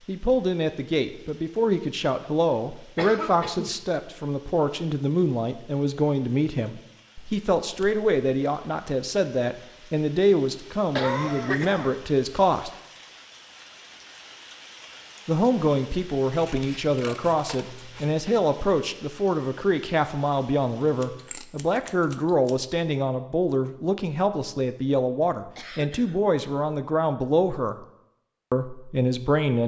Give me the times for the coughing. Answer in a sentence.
The coughing can be heard from 3.0 to 3.8 s, from 10.9 to 12.0 s and from 25.6 to 26.2 s.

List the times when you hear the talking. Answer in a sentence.
You can hear the talking from 0.1 to 12.7 s, from 15.2 to 27.9 s and from 28.5 to 29.6 s.